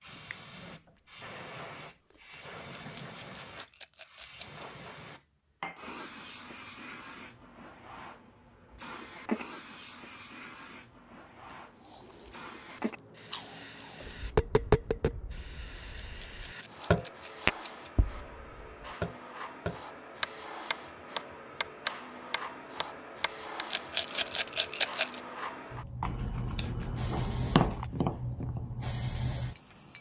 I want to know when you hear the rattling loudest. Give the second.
25 s.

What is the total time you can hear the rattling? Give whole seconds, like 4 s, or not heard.
5 s.